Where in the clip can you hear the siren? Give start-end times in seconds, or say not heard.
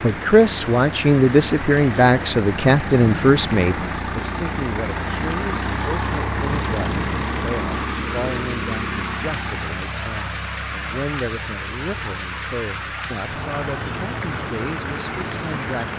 not heard.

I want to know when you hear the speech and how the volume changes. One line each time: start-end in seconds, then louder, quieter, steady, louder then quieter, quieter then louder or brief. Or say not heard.
0.0-15.9 quieter.